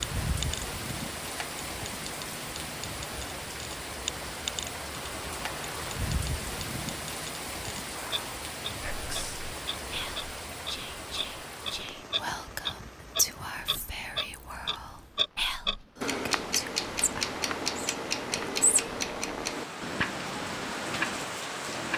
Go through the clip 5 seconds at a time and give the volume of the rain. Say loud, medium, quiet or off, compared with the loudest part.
loud, loud, medium, medium, loud.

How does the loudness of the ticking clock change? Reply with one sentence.
The loudness of the ticking clock goes up.